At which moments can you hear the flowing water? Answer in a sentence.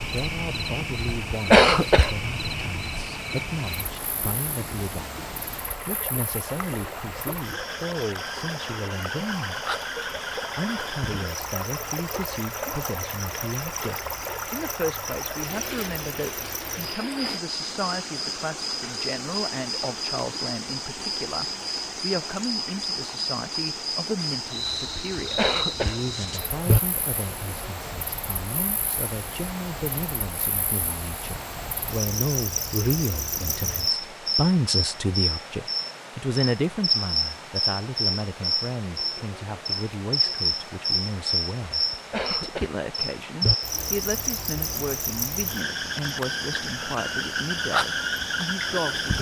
You can hear the flowing water from 0.0 to 49.1 s.